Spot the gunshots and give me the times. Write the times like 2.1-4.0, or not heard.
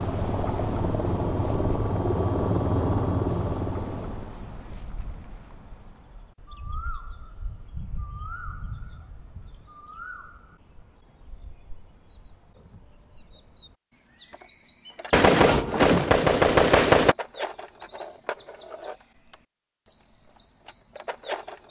15.1-17.1.